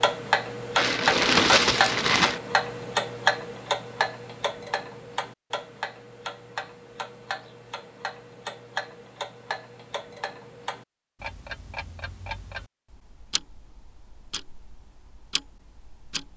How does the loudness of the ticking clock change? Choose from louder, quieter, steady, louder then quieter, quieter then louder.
quieter.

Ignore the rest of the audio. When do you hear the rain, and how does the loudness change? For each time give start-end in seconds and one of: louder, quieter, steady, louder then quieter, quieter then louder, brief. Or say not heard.
not heard.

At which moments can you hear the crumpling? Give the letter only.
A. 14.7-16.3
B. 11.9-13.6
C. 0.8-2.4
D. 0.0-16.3
C.